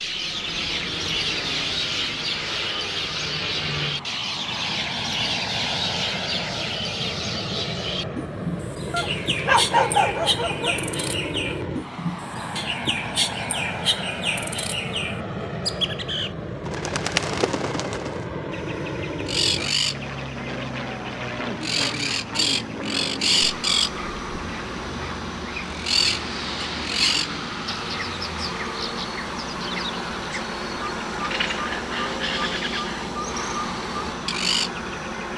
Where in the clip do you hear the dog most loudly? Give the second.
10 s.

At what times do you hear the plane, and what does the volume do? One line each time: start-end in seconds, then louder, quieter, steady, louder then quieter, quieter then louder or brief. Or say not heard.
0.0-35.3 steady.